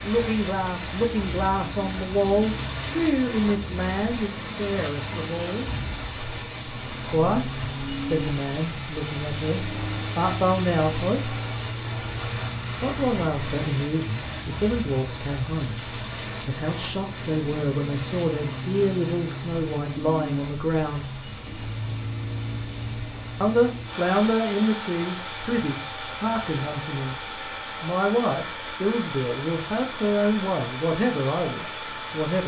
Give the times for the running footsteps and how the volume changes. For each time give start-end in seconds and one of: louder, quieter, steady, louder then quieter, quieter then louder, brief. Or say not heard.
not heard.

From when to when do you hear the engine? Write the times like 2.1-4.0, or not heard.
0.1-32.4.